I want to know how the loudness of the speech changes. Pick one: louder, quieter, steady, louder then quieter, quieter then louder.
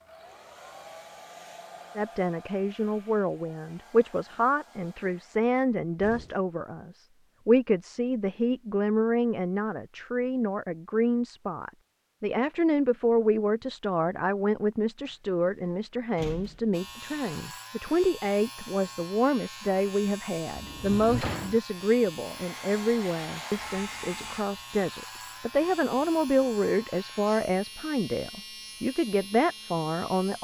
steady.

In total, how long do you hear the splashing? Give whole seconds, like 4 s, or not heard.
not heard.